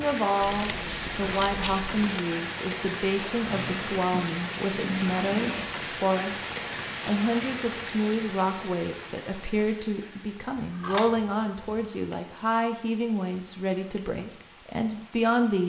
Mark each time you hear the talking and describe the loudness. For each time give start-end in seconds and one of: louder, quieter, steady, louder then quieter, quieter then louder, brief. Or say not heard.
0.0-15.6 steady.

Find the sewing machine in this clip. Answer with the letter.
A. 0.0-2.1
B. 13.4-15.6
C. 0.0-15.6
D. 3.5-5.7
D.